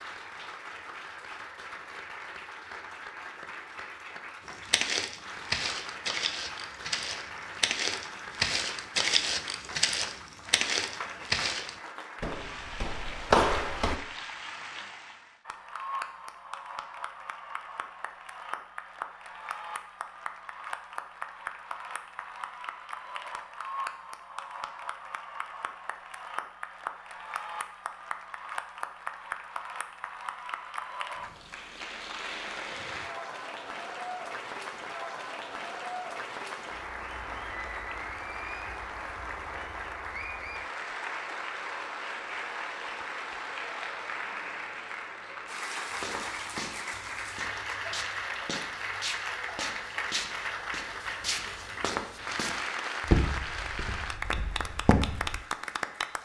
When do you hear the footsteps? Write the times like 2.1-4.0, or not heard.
4.7-13.9, 45.9-55.4.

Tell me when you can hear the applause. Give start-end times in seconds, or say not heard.
0.0-56.2.